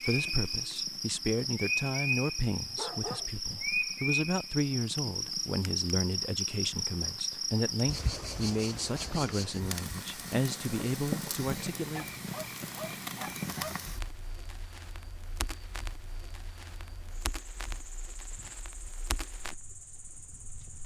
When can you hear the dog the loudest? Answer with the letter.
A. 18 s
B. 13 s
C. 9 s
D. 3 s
D.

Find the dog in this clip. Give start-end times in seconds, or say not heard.
2.8-3.3, 11.9-13.8.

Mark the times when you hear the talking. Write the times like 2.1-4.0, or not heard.
0.0-12.1.